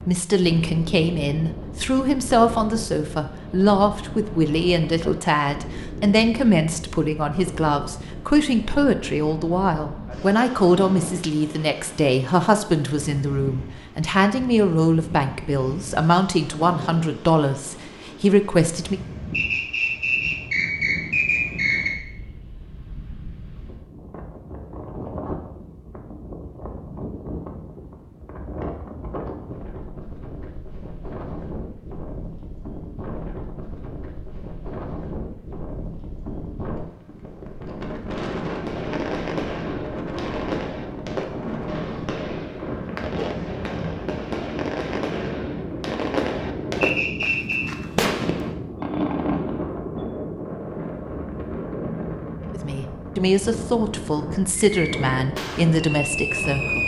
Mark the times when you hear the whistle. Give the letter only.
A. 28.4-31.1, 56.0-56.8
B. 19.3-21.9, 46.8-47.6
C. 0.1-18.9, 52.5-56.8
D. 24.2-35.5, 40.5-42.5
B.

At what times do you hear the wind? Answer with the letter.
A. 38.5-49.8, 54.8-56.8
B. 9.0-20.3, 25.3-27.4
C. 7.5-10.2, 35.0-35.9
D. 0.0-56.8
D.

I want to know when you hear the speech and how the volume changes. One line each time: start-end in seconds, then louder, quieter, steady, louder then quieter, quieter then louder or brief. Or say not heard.
0.1-18.9 steady
52.5-56.8 steady.